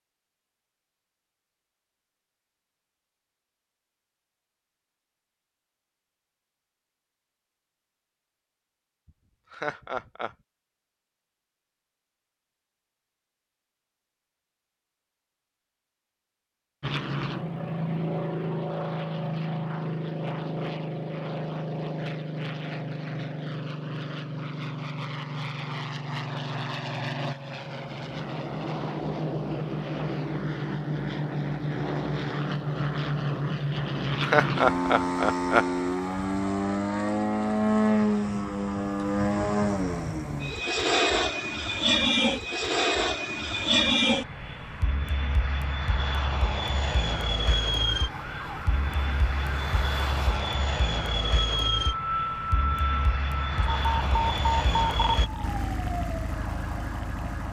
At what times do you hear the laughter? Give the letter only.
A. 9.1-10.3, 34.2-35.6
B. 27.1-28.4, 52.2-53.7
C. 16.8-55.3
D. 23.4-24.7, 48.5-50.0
A.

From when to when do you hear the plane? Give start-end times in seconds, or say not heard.
16.8-55.3.